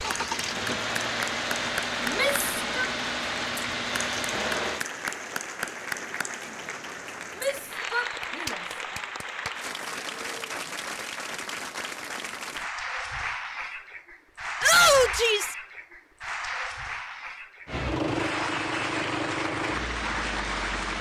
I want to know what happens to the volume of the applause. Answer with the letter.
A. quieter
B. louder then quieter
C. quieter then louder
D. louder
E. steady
E.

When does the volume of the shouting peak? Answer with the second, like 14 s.
15 s.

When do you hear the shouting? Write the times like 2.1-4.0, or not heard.
2.0-2.9, 7.3-9.0, 14.6-15.6.